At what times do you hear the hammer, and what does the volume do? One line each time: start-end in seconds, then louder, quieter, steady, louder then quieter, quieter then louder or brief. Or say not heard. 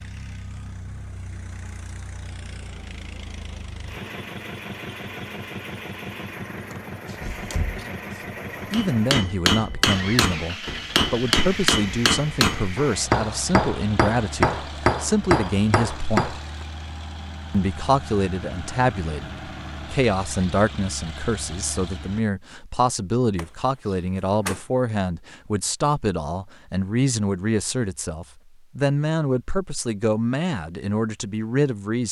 8.7-16.4 steady.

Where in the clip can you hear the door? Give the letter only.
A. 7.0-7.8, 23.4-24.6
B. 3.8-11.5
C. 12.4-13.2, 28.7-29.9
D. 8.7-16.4
A.